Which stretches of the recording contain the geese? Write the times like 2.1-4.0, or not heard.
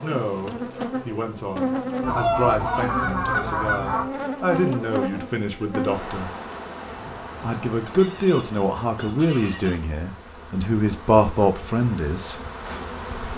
2.0-4.0, 7.8-9.8.